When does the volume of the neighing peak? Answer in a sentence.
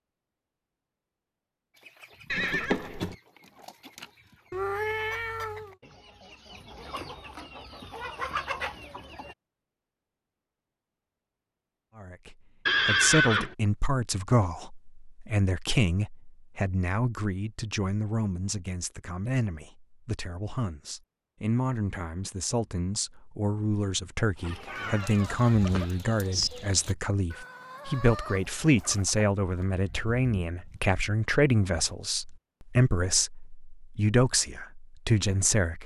The loudest moment of the neighing is at 13 seconds.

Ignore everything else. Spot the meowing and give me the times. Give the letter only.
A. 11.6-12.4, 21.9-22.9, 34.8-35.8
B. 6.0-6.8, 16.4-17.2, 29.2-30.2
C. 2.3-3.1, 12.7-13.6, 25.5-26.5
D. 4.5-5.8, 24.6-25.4
D.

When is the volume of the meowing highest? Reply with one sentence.
The loudest moment of the meowing is at 5 seconds.